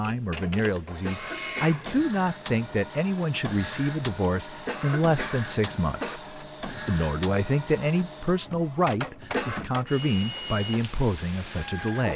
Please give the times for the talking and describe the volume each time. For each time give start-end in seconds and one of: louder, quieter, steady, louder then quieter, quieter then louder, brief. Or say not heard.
0.0-12.1 steady.